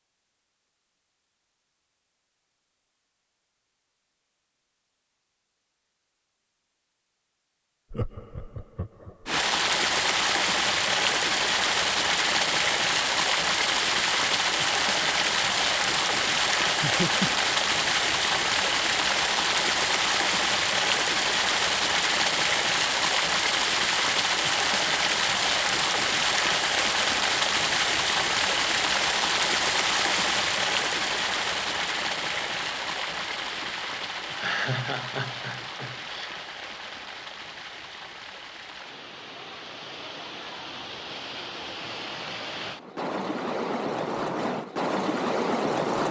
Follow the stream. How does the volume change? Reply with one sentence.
The volume of the stream goes down.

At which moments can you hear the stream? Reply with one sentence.
You can hear the stream from 9.2 to 46.0 s.